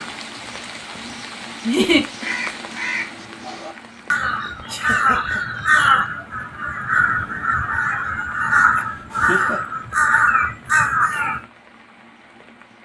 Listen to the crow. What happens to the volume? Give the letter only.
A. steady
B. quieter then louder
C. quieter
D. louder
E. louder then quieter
D.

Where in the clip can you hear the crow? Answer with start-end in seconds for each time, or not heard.
1.9-11.4.